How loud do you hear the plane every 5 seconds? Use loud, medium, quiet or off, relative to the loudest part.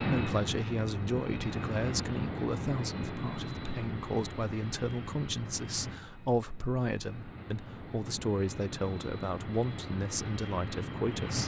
loud, medium, loud.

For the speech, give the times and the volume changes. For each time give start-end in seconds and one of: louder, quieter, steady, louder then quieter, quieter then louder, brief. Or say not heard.
0.0-11.4 steady.